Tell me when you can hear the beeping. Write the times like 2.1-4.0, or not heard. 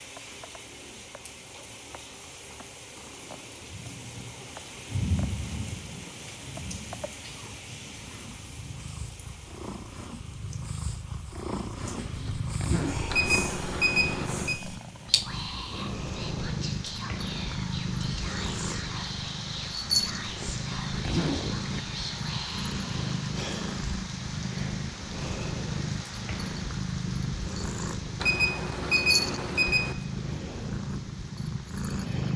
13.1-14.6, 28.2-29.9.